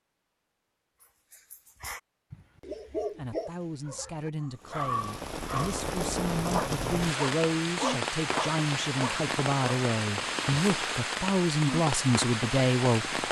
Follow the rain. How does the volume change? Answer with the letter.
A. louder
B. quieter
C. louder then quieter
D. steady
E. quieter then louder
D.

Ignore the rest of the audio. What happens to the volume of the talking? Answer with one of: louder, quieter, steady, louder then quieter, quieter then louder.
louder.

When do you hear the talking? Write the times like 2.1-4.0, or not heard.
3.1-13.1.